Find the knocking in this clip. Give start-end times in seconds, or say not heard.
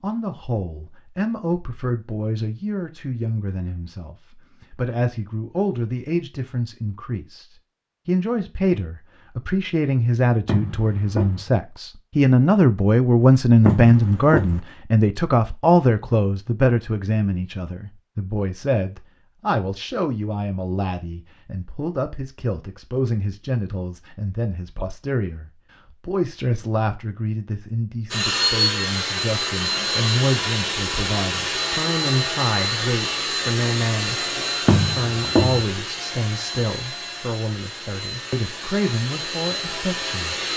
10.4-11.4, 13.7-14.6, 34.6-35.6.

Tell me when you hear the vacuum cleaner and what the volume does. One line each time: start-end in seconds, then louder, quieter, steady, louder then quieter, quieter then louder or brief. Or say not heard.
28.1-40.5 quieter.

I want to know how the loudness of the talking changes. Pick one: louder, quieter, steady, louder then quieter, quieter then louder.
louder then quieter.